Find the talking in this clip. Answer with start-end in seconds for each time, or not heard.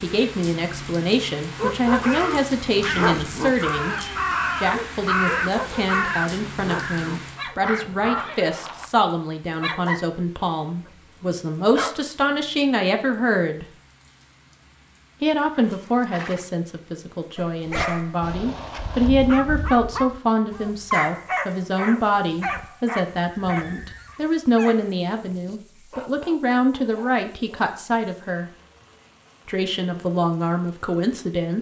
0.0-4.0, 4.5-13.7, 15.2-28.5, 29.4-31.5.